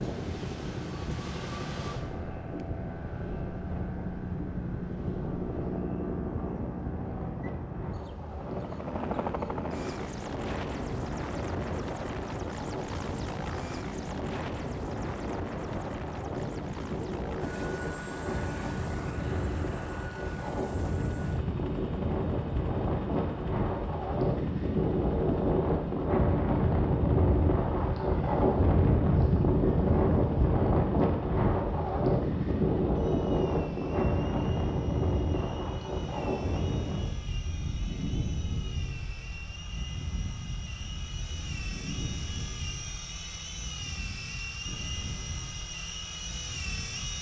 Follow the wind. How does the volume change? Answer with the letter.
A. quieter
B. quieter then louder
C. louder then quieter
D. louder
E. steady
C.